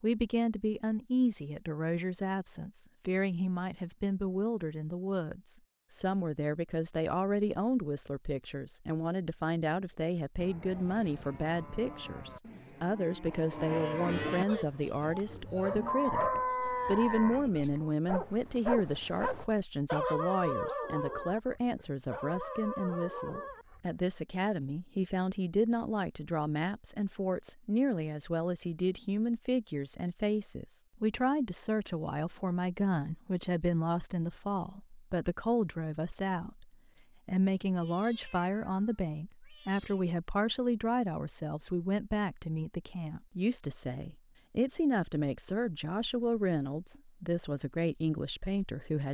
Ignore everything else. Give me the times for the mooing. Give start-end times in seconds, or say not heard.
9.9-17.9.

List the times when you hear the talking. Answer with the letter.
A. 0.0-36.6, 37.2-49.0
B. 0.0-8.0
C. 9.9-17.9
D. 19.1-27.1
A.